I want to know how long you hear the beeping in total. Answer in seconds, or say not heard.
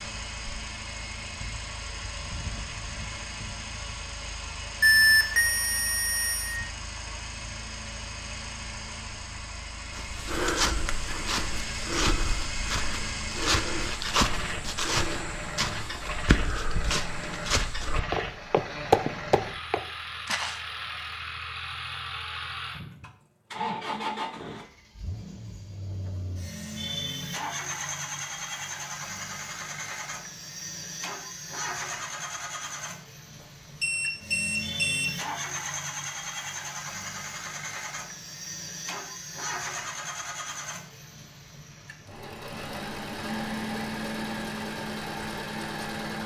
3 s.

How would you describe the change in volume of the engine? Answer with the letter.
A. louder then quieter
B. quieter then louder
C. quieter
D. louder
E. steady
E.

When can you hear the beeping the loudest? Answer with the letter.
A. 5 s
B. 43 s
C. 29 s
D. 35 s
A.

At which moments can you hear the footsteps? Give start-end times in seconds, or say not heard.
9.9-20.6.